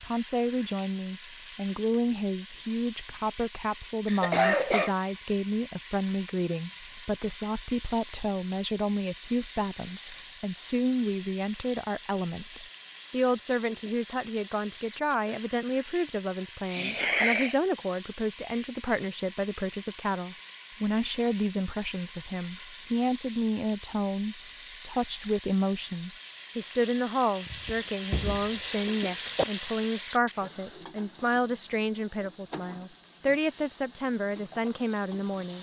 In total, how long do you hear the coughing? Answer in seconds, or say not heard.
4 s.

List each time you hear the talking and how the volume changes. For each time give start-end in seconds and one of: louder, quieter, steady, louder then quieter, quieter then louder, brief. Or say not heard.
0.0-35.5 steady.